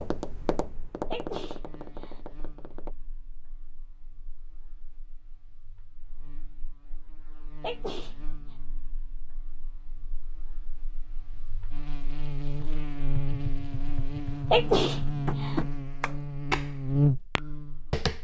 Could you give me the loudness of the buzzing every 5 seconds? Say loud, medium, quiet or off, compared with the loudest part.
quiet, quiet, medium, loud.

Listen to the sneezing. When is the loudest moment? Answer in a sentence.
The volume of the sneezing peaks at 15 seconds.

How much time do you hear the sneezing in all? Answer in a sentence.
The sneezing can be heard for 3 seconds in total.